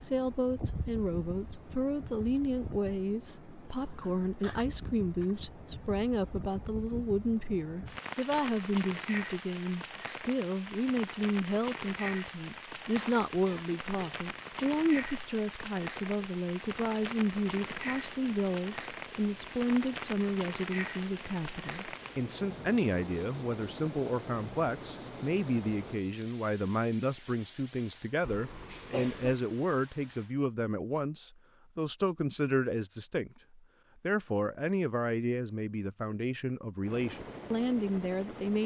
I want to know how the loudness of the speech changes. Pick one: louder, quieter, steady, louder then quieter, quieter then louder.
steady.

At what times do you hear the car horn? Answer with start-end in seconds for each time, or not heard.
not heard.